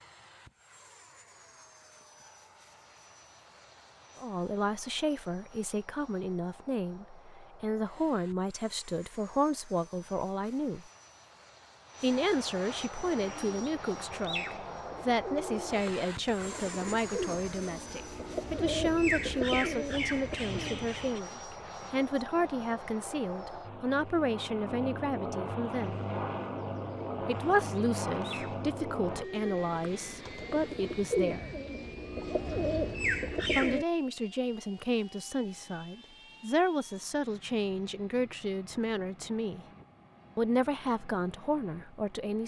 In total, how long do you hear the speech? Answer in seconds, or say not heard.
33 s.